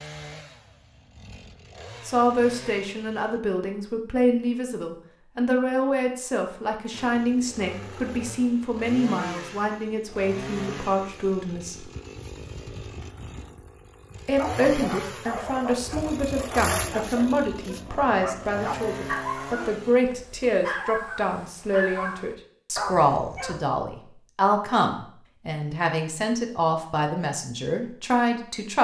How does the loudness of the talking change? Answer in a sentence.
The loudness of the talking stays about the same.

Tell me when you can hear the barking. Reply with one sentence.
The barking can be heard from 14.3 to 23.6 s.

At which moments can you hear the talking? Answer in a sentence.
You can hear the talking from 2.0 to 11.8 s and from 14.2 to 28.7 s.